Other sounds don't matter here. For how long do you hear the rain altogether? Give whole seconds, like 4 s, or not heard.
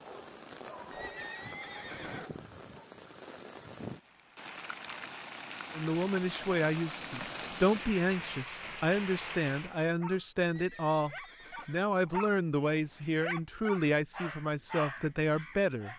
10 s.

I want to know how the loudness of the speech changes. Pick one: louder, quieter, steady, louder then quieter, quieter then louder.
steady.